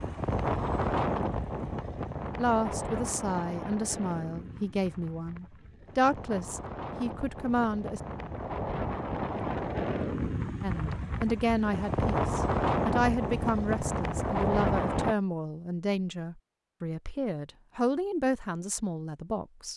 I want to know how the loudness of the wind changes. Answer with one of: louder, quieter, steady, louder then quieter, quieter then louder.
quieter then louder.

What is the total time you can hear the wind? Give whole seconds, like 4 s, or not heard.
15 s.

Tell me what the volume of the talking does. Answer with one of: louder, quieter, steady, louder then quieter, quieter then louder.
steady.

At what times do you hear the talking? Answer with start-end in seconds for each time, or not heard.
2.4-8.0, 10.6-19.7.